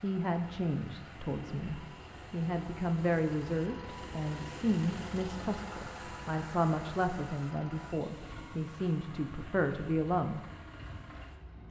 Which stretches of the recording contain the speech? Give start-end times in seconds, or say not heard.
0.0-10.4.